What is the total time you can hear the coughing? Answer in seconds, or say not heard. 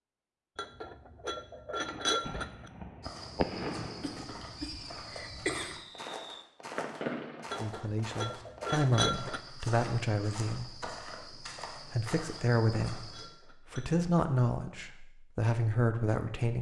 2 s.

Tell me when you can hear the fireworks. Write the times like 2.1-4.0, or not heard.
1.8-7.5.